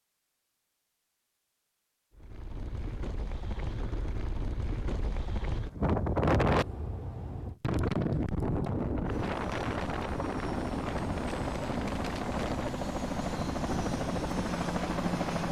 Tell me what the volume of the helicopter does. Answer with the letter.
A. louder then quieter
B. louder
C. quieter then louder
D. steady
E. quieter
B.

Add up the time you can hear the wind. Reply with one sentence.
You can hear the wind for 13 seconds altogether.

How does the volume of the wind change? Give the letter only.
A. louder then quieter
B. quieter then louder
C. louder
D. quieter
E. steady
A.